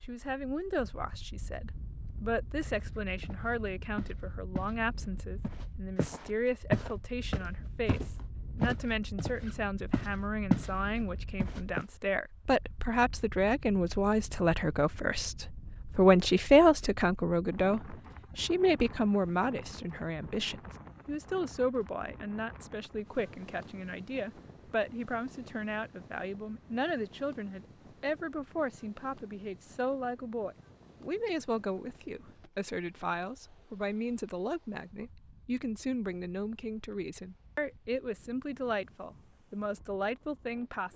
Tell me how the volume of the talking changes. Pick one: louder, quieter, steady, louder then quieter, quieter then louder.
louder then quieter.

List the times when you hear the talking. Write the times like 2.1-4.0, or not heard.
0.0-40.9.